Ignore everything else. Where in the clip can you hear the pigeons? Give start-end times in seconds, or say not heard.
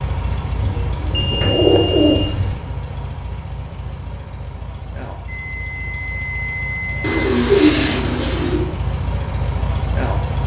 0.6-2.5, 7.0-8.7.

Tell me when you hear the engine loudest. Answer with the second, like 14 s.
10 s.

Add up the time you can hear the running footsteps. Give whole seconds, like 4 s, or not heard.
not heard.